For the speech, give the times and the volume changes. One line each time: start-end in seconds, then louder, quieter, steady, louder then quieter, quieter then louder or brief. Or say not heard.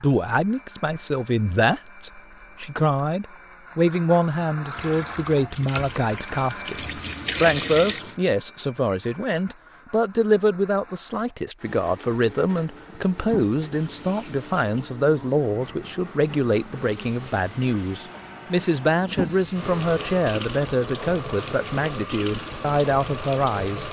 0.0-23.8 steady.